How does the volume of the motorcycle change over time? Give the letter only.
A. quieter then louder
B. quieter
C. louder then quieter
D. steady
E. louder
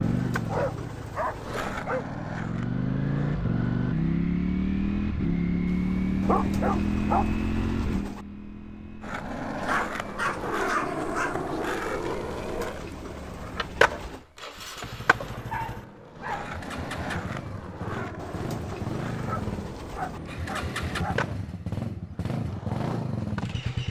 A.